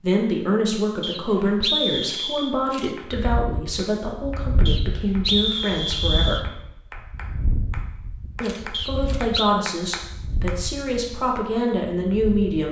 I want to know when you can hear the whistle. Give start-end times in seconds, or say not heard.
1.0-2.5, 4.7-6.5, 8.7-9.5.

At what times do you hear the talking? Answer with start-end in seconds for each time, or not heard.
0.0-6.4, 8.4-12.6.